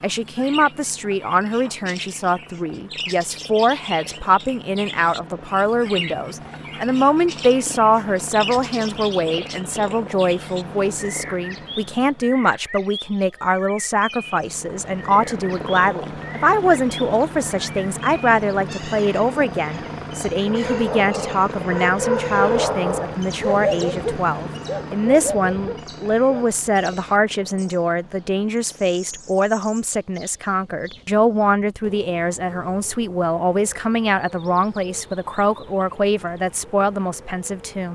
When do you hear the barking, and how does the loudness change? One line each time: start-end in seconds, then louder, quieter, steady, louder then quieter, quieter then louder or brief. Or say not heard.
20.4-26.6 louder then quieter.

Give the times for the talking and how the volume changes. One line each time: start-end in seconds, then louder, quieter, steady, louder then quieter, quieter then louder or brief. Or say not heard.
0.0-37.9 steady.